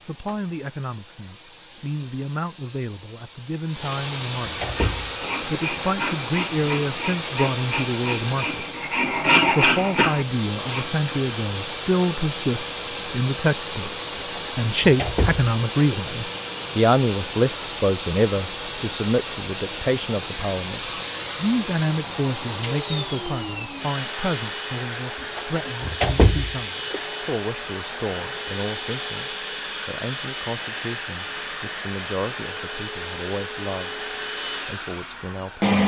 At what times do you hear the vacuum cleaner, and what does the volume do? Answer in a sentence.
You can hear the vacuum cleaner from 0.0 to 35.8 s, at a steady volume.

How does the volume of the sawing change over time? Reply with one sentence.
The volume of the sawing goes up.